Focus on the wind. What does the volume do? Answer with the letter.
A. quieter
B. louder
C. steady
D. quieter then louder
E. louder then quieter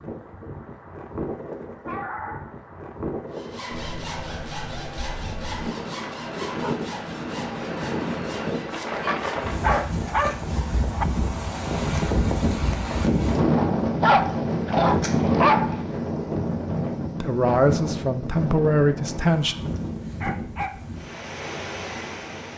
E.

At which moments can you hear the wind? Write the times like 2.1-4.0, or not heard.
0.0-22.5.